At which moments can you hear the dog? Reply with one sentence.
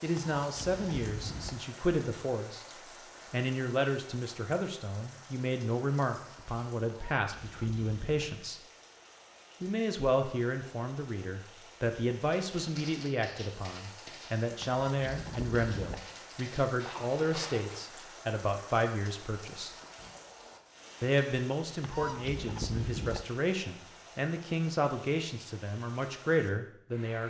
You can't hear the dog here.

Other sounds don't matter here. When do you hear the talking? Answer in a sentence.
You can hear the talking from 0.0 to 2.6 s, from 3.3 to 8.6 s, from 9.6 to 19.8 s and from 21.0 to 27.2 s.